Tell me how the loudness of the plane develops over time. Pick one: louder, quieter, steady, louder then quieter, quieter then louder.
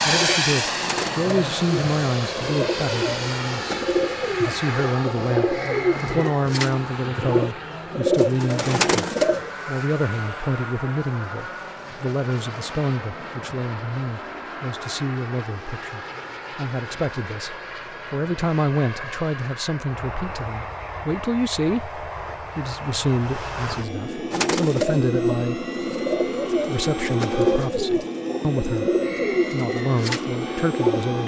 quieter then louder.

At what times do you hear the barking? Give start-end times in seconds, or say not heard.
not heard.